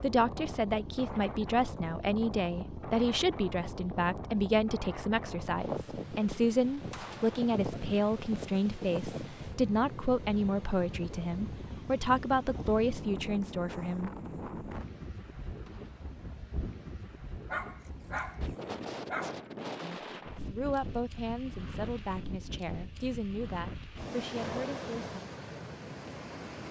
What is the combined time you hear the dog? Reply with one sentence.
You can hear the dog for 2 seconds altogether.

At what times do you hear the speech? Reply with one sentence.
You can hear the speech from 0.0 to 14.1 s and from 19.8 to 25.1 s.